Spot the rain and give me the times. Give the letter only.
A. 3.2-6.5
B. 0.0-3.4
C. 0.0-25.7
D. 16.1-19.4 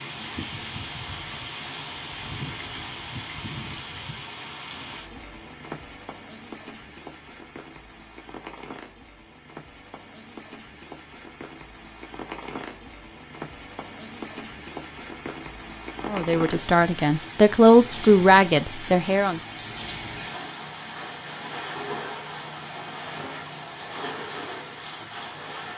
C.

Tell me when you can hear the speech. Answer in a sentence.
You can hear the speech from 16.1 to 19.4 s.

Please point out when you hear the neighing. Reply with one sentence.
The neighing can't be heard in this clip.